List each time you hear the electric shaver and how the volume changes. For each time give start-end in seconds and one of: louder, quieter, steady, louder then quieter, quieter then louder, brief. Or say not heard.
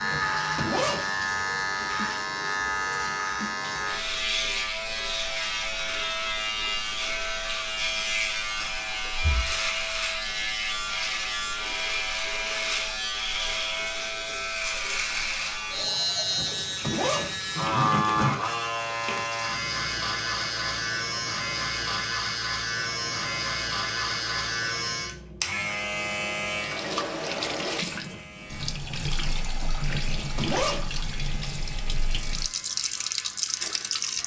0.0-34.2 quieter.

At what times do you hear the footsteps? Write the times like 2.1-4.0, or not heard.
not heard.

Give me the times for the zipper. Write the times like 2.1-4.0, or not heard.
0.1-1.1, 16.4-18.4, 29.9-31.0.